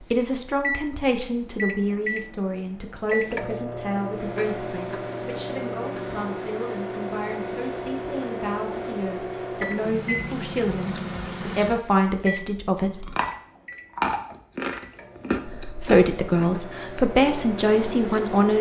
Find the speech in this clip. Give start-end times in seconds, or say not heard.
0.0-13.1, 15.4-18.5.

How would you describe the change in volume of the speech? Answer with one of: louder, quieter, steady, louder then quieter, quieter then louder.
quieter then louder.